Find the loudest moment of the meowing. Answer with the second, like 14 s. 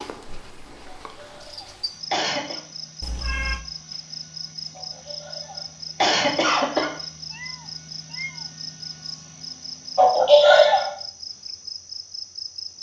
3 s.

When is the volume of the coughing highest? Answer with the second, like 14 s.
10 s.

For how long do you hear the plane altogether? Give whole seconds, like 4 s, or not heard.
not heard.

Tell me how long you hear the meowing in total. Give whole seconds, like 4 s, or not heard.
2 s.